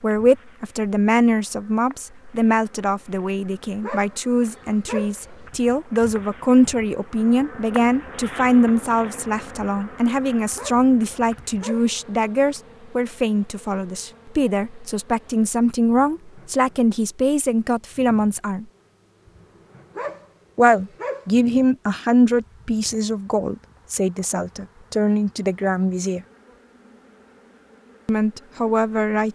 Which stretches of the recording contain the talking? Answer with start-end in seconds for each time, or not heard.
0.0-18.6, 20.6-26.2, 28.1-29.2.